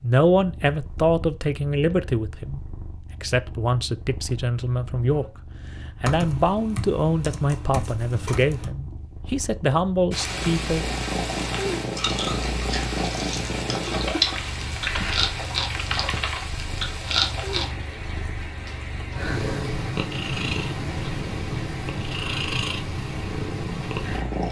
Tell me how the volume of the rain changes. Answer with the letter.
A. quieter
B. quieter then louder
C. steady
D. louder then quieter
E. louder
A.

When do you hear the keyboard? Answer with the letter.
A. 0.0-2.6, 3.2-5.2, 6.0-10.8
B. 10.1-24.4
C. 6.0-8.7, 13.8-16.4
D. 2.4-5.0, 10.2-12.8
C.